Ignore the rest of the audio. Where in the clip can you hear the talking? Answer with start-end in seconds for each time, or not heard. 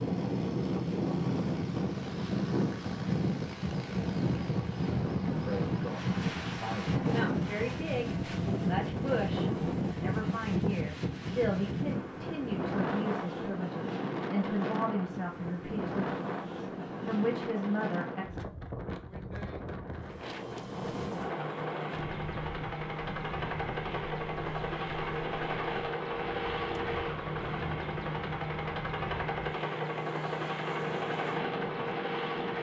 5.3-18.2.